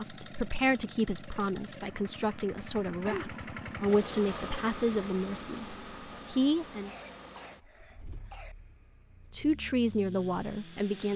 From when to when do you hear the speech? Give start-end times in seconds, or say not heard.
0.0-6.9, 9.3-11.1.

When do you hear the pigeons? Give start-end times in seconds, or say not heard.
not heard.